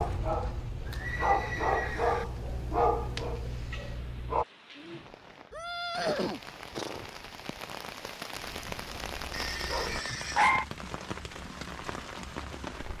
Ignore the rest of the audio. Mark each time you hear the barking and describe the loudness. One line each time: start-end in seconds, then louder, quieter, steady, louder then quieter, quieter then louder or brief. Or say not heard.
0.0-4.5 louder then quieter
8.6-10.7 brief.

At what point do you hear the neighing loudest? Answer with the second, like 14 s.
6 s.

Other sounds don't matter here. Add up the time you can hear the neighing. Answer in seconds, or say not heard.
4 s.